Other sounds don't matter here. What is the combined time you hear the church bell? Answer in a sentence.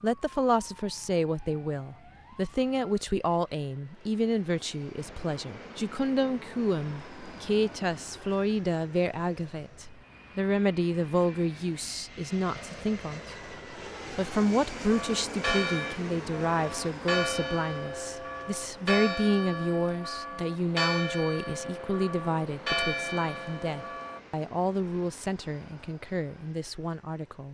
The church bell can be heard for 9 seconds in total.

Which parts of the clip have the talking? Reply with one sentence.
You can hear the talking from 0.0 to 27.4 s.